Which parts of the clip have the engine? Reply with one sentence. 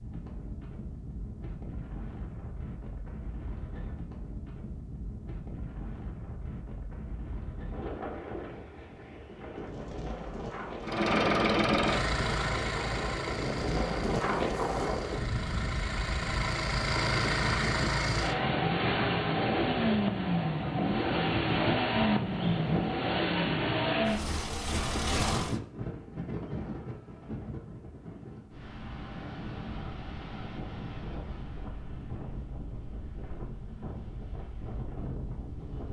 The engine can be heard from 10.8 to 25.6 s.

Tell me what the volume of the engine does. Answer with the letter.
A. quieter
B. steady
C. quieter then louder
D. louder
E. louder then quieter
C.